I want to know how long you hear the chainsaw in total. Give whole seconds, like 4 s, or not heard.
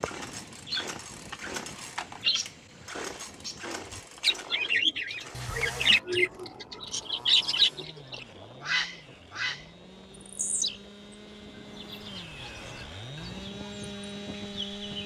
15 s.